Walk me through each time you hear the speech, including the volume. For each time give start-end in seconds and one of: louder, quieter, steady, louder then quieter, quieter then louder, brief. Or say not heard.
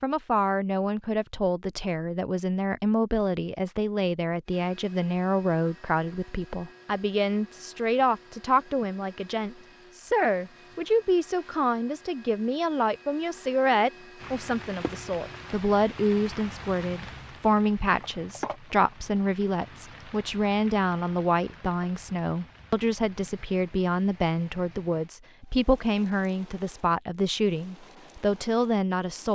0.0-29.3 steady.